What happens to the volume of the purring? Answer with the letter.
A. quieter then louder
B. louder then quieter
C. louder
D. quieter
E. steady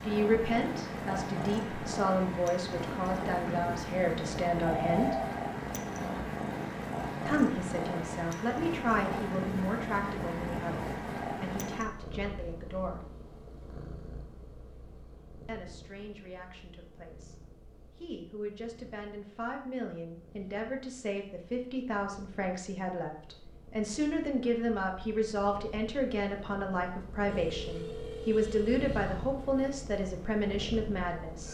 A.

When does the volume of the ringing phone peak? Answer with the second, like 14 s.
5 s.